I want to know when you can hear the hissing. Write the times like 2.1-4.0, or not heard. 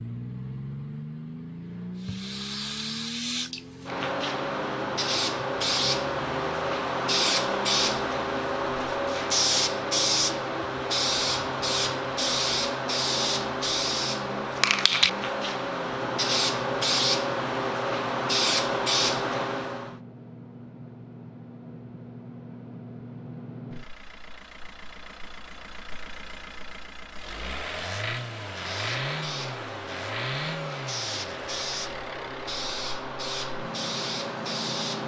1.9-19.9, 28.4-35.0.